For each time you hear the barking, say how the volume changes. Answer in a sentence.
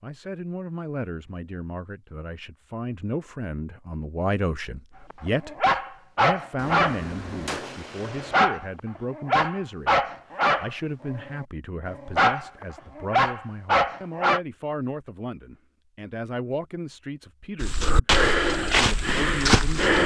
The barking can be heard from 5.1 to 14.4 s, at a steady volume.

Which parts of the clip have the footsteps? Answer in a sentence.
The footsteps can be heard from 17.6 to 20.0 s.